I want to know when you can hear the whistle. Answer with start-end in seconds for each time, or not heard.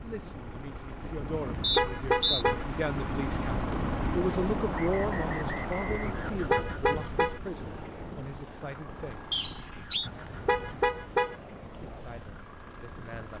1.6-2.5, 4.7-6.4, 9.3-10.1.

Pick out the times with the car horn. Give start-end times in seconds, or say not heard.
1.3-2.6, 6.0-7.4, 10.1-11.3.